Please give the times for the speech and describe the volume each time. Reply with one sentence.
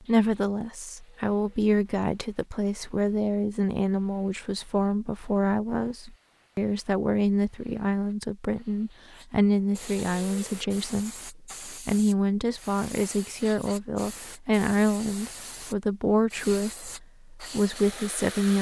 The speech can be heard from 0.0 to 18.5 s, at a steady volume.